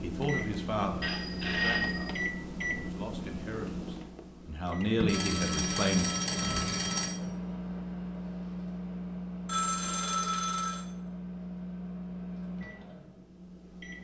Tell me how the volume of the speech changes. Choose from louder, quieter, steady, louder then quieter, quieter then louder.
quieter then louder.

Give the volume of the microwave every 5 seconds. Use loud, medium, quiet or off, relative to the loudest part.
loud, loud, medium.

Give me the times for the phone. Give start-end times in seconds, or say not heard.
1.0-2.1, 5.0-7.1, 9.4-10.8.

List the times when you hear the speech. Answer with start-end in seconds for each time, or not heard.
0.0-6.1.